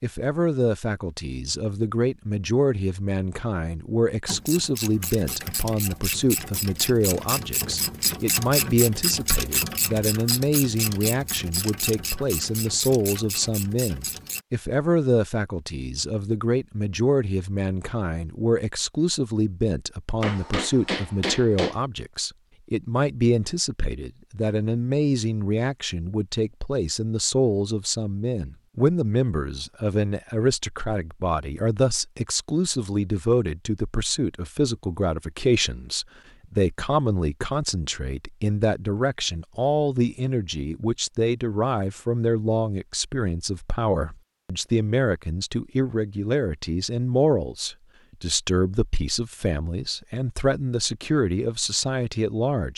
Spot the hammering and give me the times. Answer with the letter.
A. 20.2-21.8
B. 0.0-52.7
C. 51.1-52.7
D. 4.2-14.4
A.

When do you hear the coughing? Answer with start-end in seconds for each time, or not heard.
not heard.